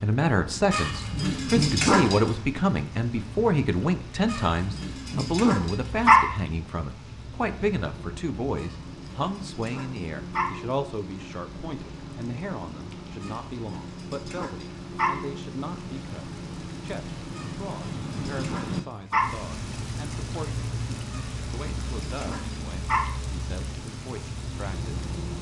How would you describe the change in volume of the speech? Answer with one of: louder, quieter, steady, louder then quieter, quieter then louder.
quieter.